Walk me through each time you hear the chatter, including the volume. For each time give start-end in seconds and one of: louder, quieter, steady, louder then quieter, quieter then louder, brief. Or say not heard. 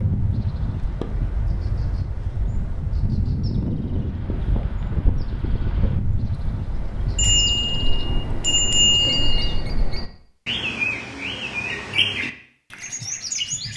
not heard.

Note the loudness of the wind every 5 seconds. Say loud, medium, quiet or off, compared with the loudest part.
loud, loud, off.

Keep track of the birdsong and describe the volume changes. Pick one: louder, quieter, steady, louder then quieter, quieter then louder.
quieter then louder.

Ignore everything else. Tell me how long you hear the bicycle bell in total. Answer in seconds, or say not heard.
2 s.